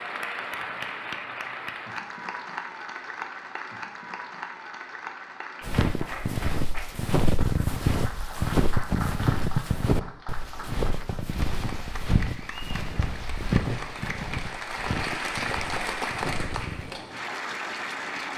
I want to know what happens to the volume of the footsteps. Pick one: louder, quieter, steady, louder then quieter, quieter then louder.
quieter.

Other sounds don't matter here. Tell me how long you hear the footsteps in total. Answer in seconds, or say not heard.
11 s.